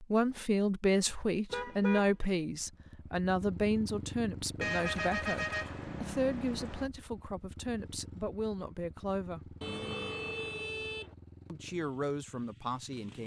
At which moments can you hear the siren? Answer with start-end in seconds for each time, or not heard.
not heard.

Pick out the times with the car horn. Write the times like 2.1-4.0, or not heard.
1.5-2.1, 4.6-6.9, 9.6-11.1.